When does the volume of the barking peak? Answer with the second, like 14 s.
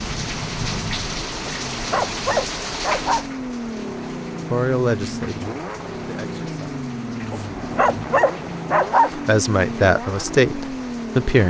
9 s.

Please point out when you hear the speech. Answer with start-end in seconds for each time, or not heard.
4.5-6.7, 9.1-11.4.